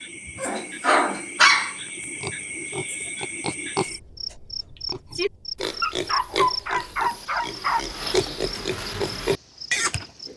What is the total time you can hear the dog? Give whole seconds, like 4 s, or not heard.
3 s.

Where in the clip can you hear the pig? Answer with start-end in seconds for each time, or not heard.
1.9-10.3.